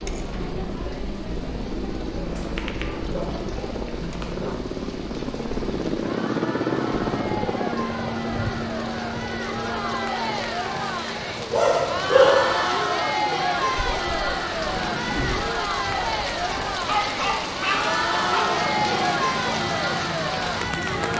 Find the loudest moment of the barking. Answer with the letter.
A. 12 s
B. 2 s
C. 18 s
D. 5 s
A.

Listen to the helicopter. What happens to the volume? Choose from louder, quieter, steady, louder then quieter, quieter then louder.
louder then quieter.